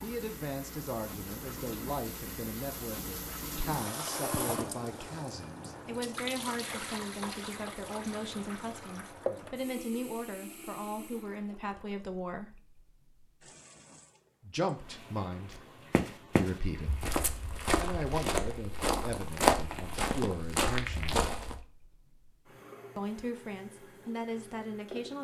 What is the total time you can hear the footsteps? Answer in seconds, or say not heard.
6 s.